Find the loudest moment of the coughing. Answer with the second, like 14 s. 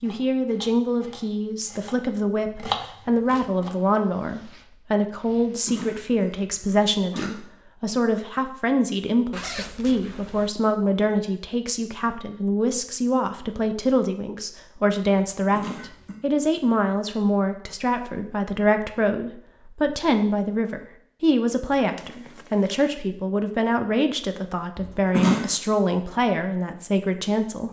25 s.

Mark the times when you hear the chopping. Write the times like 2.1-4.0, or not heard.
0.0-3.7.